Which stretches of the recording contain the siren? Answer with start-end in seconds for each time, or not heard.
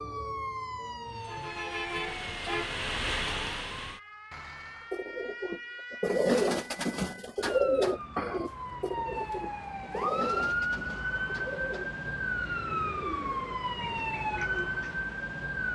0.0-15.7.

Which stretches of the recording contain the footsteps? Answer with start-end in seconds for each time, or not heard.
not heard.